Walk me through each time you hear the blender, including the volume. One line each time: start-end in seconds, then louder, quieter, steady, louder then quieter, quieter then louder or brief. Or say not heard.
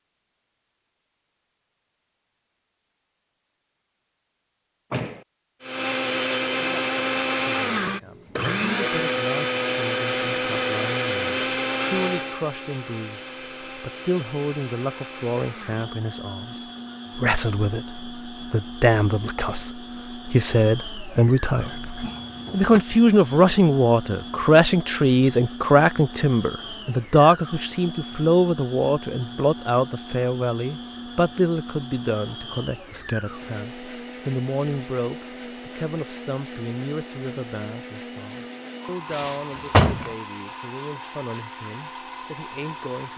5.6-43.1 quieter.